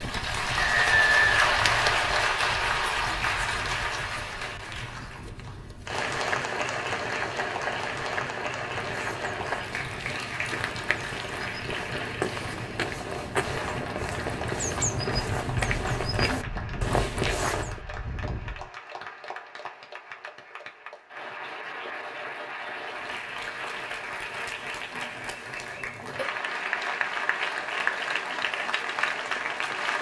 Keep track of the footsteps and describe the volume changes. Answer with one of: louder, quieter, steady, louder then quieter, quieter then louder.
louder.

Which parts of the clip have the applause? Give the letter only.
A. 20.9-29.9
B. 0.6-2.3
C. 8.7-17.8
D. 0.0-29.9
D.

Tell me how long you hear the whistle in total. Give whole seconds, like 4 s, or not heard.
2 s.